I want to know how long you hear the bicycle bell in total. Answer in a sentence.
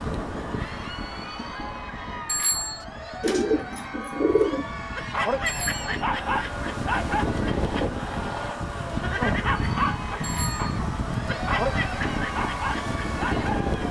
The bicycle bell can be heard for 2 seconds in total.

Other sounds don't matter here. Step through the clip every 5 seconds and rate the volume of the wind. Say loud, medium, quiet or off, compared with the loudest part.
medium, loud, loud.